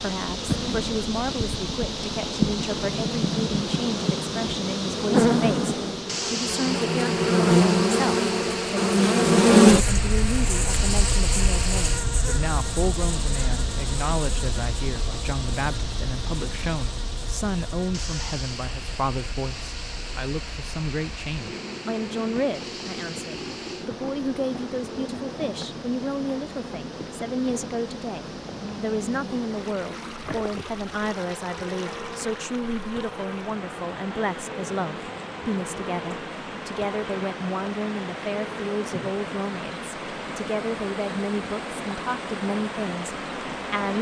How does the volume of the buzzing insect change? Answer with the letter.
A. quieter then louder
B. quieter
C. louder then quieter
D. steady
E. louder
B.